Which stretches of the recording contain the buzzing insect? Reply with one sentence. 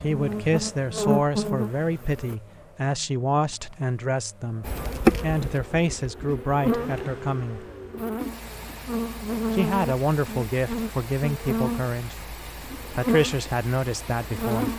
The buzzing insect can be heard from 0.1 to 2.4 s and from 4.6 to 14.7 s.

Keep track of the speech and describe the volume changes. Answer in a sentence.
The volume of the speech stays about the same.